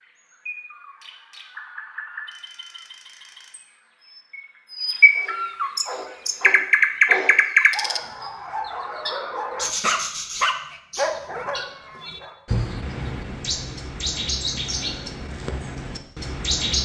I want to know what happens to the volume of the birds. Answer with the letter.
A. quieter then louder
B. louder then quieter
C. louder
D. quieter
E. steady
B.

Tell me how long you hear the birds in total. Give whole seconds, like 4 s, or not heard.
17 s.